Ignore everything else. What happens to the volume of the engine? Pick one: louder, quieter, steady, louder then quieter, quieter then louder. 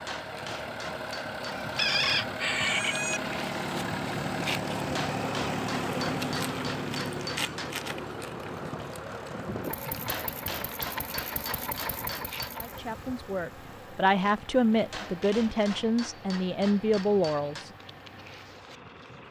quieter.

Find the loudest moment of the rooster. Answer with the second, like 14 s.
2 s.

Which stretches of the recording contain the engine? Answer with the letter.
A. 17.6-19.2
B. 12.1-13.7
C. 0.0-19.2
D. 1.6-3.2
C.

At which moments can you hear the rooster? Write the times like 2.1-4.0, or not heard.
1.6-3.2.